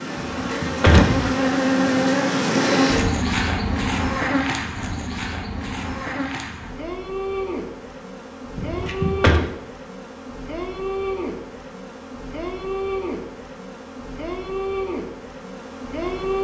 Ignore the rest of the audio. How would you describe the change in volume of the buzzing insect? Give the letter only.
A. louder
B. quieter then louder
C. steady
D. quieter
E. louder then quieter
D.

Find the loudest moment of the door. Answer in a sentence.
The loudest moment of the door is at 1 second.